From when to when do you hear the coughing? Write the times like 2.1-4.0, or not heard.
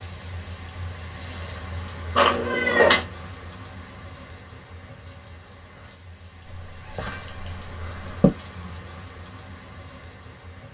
not heard.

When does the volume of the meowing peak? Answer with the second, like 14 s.
3 s.